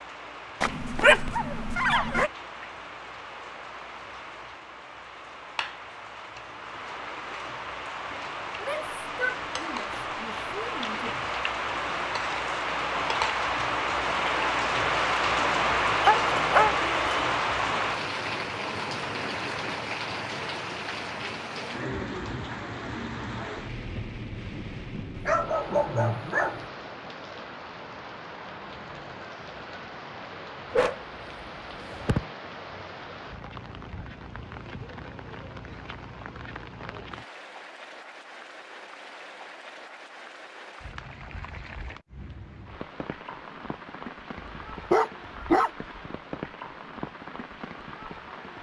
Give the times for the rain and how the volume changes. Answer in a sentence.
The rain can be heard from 0.0 to 48.5 s, getting louder then quieter.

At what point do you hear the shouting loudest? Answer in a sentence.
The loudest moment of the shouting is at 9 seconds.